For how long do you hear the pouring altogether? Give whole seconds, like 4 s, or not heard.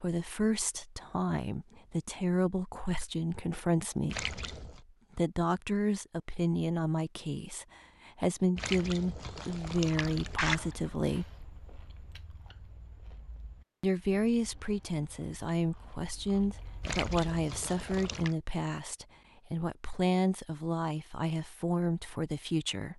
4 s.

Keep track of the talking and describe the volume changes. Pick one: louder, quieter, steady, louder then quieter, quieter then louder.
steady.